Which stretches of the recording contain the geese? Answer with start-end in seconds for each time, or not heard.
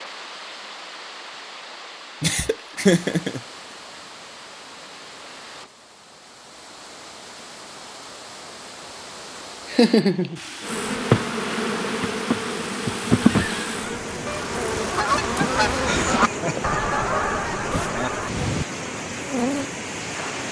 13.2-18.6.